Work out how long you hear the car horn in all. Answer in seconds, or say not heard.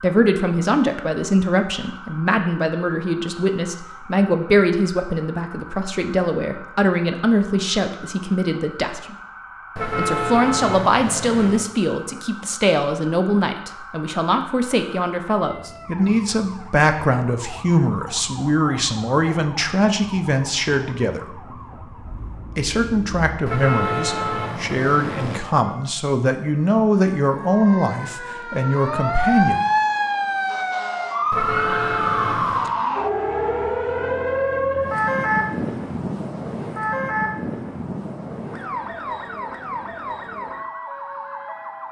5 s.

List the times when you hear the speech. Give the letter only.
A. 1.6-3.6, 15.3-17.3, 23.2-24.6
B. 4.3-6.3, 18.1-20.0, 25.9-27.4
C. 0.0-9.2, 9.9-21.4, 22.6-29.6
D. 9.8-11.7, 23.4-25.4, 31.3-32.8
C.